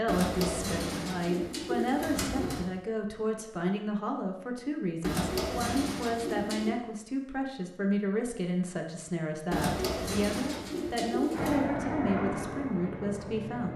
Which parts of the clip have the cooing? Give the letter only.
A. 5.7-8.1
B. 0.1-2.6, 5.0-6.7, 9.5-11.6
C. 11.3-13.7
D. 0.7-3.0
B.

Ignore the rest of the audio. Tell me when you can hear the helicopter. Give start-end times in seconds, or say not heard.
11.3-13.7.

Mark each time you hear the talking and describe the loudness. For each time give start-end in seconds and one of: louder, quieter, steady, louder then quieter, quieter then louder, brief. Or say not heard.
0.0-13.7 steady.